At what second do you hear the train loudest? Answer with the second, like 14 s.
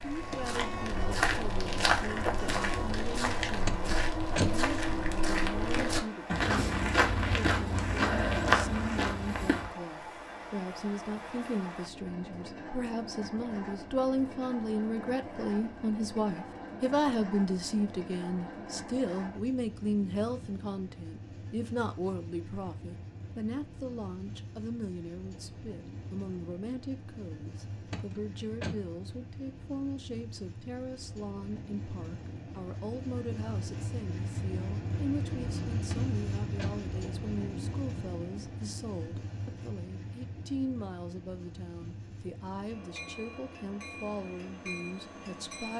36 s.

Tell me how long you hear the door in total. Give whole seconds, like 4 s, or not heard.
3 s.